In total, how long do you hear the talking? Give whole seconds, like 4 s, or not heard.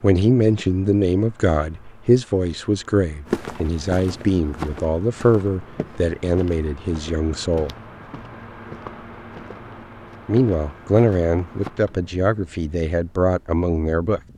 12 s.